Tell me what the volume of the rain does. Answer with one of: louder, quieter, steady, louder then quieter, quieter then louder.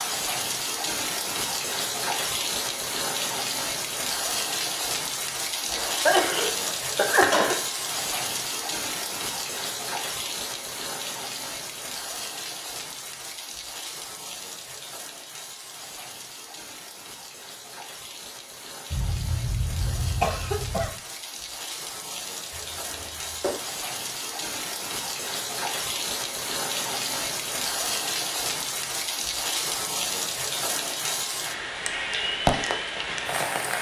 quieter then louder.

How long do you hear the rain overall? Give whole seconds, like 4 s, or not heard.
34 s.